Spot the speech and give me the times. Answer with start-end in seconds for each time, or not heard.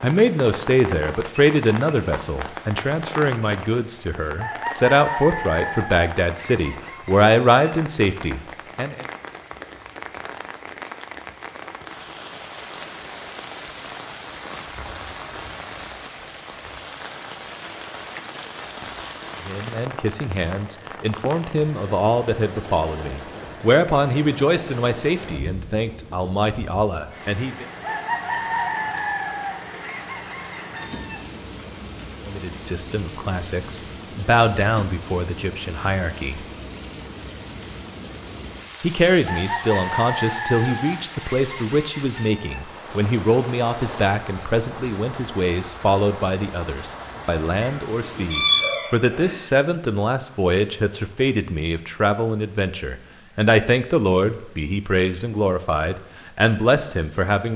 0.0-9.1, 19.4-27.6, 32.2-36.5, 38.8-57.5.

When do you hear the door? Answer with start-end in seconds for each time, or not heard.
not heard.